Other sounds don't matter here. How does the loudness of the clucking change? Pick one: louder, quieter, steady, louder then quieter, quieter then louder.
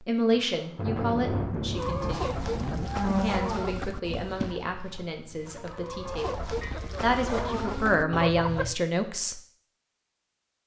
quieter then louder.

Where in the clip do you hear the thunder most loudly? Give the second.
1 s.